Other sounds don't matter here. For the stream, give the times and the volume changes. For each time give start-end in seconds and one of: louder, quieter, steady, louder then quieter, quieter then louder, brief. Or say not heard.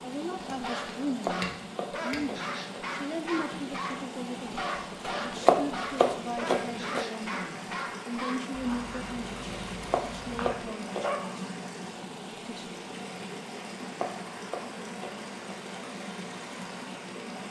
0.0-17.4 steady.